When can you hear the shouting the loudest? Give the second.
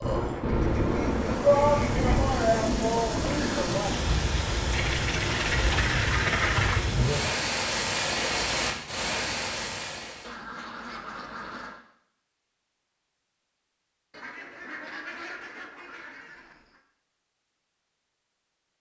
2 s.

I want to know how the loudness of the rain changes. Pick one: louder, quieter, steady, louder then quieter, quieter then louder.
steady.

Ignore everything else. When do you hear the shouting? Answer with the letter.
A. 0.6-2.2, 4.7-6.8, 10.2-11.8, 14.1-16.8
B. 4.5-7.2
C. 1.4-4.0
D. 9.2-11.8
C.